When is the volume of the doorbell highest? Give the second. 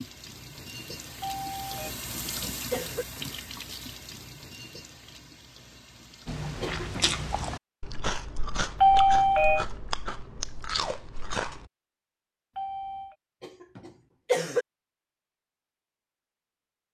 9 s.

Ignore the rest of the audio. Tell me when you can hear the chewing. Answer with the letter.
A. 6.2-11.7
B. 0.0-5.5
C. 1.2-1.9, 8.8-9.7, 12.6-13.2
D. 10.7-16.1
A.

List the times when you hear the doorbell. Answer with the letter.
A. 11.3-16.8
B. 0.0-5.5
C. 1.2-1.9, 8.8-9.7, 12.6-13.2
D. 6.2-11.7
C.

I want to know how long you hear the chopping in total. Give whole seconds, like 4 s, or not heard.
not heard.